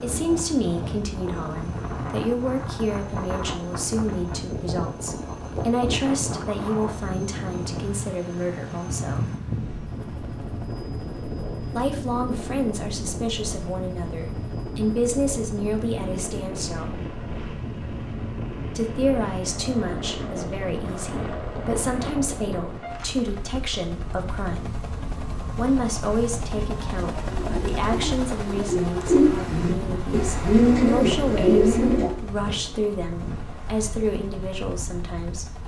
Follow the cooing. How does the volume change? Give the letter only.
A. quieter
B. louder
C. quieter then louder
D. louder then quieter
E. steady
B.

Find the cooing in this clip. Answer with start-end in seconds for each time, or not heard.
27.1-32.2.